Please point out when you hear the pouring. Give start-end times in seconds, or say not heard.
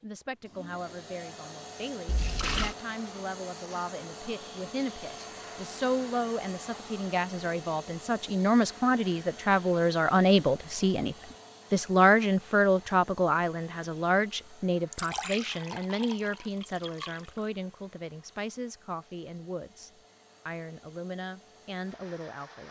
2.0-2.8, 14.9-17.4.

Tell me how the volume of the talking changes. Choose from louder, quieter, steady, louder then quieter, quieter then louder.
louder then quieter.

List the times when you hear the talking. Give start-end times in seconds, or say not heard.
0.0-22.6.